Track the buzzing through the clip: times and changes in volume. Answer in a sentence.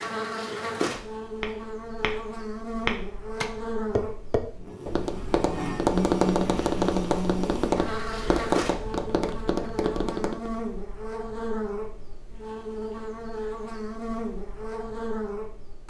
You can hear the buzzing from 0.0 to 15.8 s, at a steady volume.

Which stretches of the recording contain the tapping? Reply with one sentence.
The tapping can be heard from 1.4 to 10.5 s.